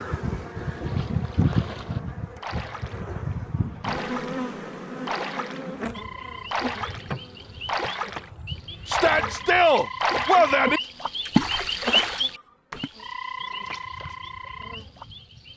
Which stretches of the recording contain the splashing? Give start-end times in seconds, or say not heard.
0.7-3.0, 3.8-4.5, 5.0-5.7, 6.5-8.3, 8.9-10.6, 11.2-12.9.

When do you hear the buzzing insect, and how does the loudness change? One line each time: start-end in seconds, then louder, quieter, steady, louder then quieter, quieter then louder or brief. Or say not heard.
0.0-15.5 quieter.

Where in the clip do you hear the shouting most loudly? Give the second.
10 s.